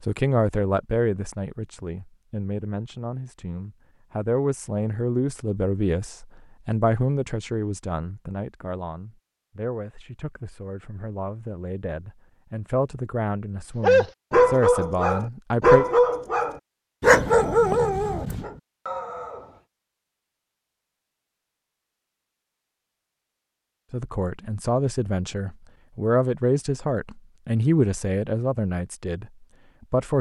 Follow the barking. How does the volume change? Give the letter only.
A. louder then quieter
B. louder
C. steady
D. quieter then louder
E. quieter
E.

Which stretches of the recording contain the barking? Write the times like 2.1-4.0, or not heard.
13.8-19.6.